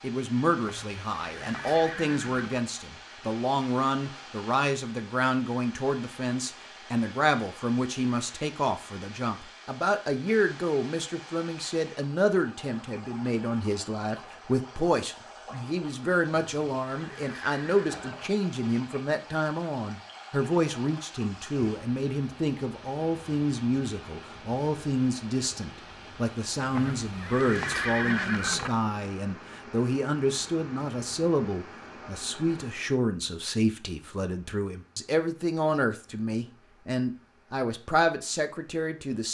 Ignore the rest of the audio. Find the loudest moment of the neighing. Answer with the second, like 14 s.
28 s.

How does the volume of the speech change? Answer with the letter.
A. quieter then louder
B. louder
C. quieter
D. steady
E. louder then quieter
D.